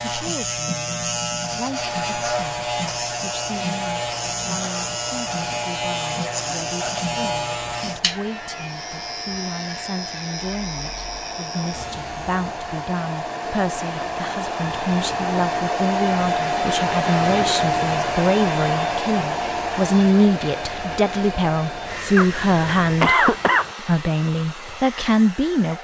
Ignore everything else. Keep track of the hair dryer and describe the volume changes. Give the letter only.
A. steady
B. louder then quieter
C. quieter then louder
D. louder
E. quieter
B.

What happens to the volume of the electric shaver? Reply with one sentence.
The volume of the electric shaver goes down.